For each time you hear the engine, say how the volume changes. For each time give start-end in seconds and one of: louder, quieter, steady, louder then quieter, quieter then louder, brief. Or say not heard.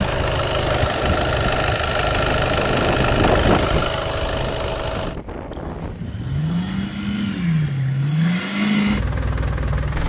0.0-10.0 quieter then louder.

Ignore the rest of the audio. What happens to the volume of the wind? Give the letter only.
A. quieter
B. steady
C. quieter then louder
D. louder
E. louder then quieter
E.